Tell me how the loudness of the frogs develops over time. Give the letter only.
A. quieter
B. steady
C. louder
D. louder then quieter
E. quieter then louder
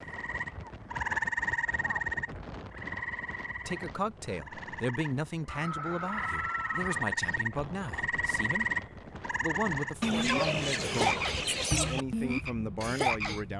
E.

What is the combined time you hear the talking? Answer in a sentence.
You can hear the talking for 10 seconds altogether.